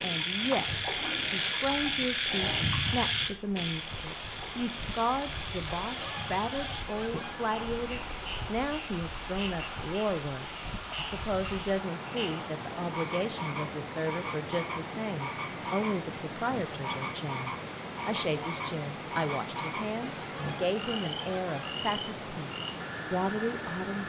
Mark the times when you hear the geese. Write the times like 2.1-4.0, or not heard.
5.7-7.5, 19.9-21.8.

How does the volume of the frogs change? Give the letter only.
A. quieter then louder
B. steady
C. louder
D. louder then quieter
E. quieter
E.